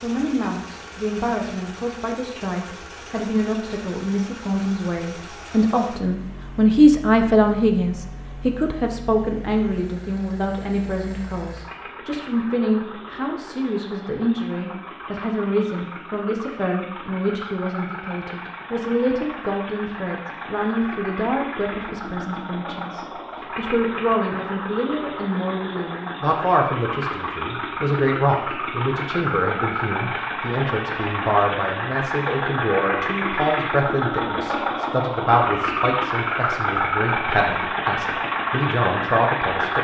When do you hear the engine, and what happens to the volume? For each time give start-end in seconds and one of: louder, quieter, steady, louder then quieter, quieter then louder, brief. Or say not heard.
0.0-39.7 louder.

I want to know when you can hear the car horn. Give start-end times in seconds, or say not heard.
not heard.